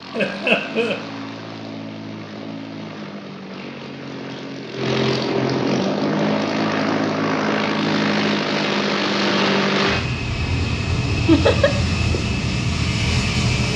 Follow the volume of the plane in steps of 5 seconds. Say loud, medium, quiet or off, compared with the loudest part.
medium, loud, loud.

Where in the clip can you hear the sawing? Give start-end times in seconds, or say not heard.
not heard.